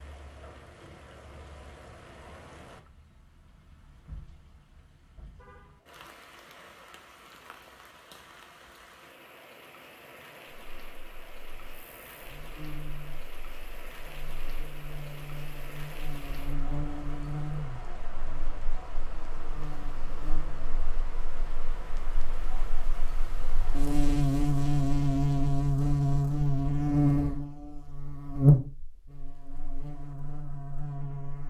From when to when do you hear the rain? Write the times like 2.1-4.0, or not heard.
0.0-23.9.